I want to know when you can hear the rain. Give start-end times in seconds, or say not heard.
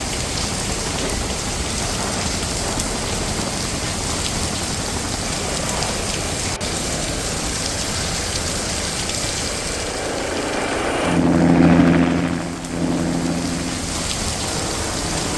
0.0-15.3.